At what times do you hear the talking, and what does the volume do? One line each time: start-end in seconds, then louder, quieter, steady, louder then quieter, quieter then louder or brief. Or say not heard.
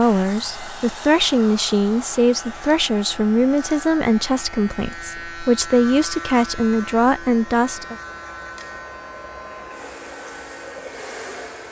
0.0-8.0 steady.